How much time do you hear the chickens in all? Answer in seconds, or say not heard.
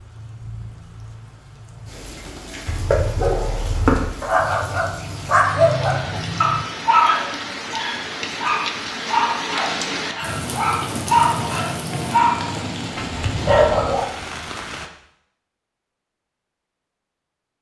2 s.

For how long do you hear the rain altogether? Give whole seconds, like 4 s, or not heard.
15 s.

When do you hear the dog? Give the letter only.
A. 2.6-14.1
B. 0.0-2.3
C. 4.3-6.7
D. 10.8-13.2
A.